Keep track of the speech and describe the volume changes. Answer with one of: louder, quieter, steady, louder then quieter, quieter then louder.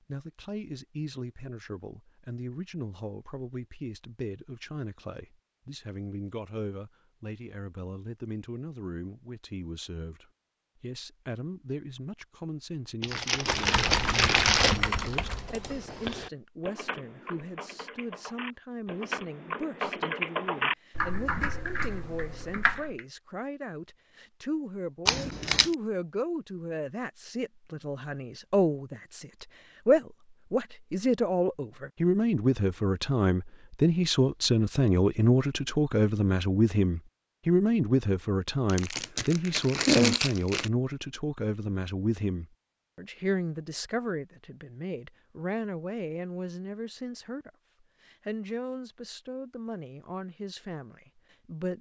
louder then quieter.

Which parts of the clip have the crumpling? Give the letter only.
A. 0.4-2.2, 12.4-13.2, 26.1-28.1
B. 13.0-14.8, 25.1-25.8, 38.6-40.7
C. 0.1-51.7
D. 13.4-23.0
B.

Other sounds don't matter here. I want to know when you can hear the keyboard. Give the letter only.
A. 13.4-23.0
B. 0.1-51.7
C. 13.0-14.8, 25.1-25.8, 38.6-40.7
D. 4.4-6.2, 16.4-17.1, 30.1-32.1
A.